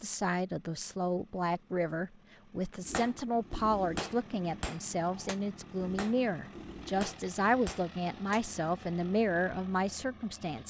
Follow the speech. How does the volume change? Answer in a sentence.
The loudness of the speech stays about the same.